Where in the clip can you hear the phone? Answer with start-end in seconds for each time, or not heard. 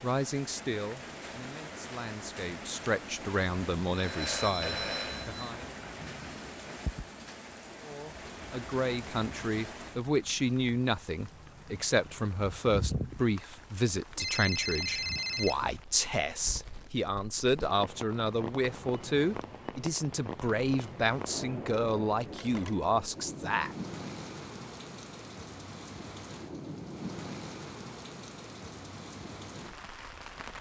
4.0-5.5, 14.2-15.6, 22.3-22.8.